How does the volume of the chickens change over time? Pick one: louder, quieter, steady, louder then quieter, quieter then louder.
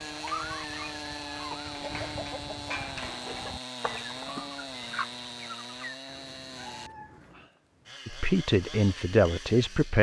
steady.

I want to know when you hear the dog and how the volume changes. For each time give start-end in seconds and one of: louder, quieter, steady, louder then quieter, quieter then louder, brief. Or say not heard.
not heard.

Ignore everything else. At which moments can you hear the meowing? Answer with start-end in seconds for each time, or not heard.
6.0-7.5.